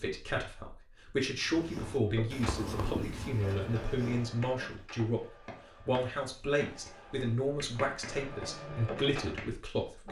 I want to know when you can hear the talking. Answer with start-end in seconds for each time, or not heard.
0.0-5.2, 5.8-10.0.